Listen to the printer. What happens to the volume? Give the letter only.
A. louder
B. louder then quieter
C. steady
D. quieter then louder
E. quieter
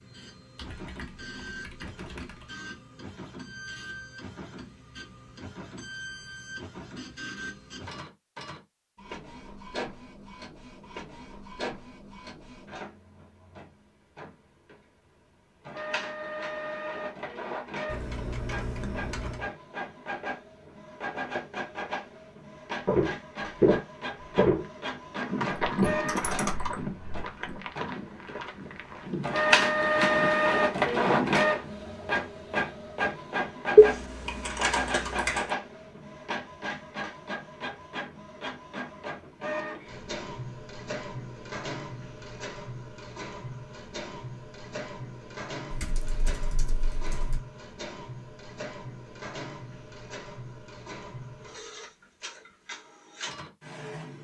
B.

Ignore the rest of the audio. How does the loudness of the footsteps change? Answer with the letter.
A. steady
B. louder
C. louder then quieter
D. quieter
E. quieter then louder
D.